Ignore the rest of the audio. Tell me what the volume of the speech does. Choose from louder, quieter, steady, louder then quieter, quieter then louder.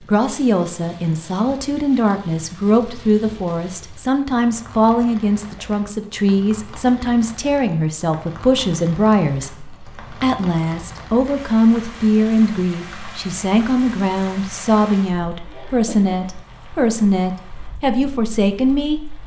steady.